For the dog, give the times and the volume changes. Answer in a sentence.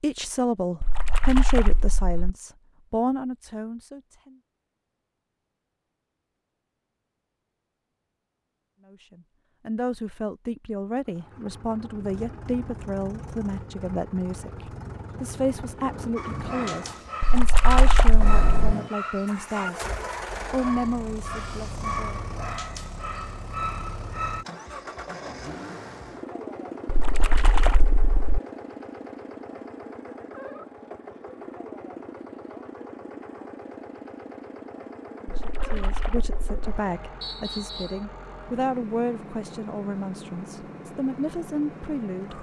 The dog can be heard from 16.1 to 24.4 s, at a steady volume.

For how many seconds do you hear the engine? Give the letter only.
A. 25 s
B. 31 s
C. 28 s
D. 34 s
B.